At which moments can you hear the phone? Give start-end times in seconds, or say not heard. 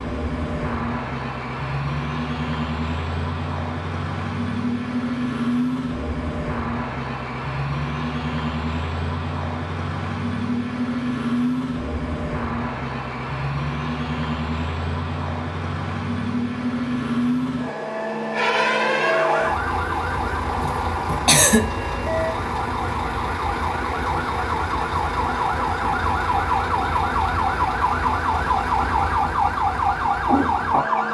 not heard.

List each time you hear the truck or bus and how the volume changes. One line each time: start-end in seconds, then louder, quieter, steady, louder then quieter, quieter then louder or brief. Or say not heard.
0.0-31.0 steady.